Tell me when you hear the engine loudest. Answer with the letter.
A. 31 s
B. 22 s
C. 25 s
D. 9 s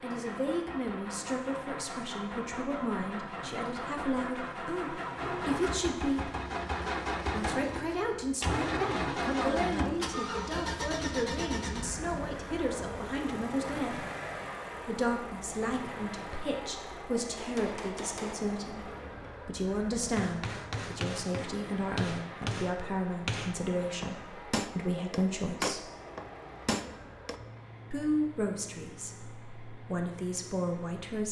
D.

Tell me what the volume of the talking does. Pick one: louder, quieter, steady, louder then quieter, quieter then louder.
steady.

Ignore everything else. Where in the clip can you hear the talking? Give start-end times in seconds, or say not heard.
0.0-6.3, 7.3-14.1, 14.8-25.9, 27.9-31.2.